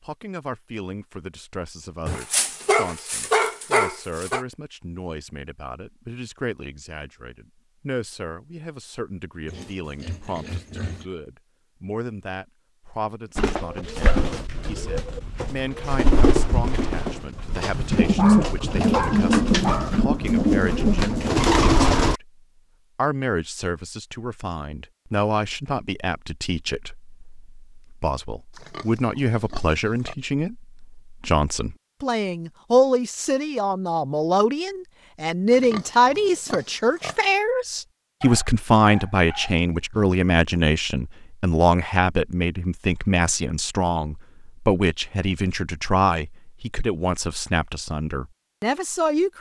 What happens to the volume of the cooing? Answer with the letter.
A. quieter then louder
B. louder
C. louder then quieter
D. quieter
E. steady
B.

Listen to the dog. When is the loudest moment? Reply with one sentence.
The loudest moment of the dog is at 3 seconds.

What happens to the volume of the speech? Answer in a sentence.
The loudness of the speech goes up.